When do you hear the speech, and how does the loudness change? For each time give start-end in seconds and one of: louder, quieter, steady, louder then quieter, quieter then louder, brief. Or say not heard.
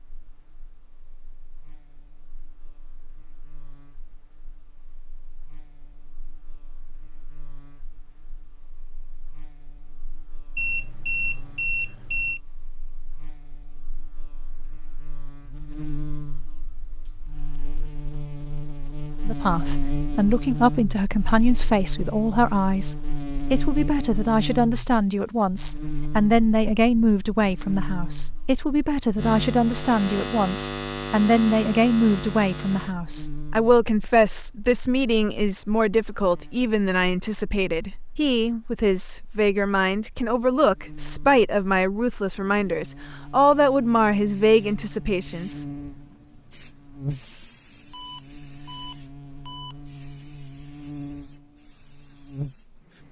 19.2-45.6 steady.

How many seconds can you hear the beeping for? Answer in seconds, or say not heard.
4 s.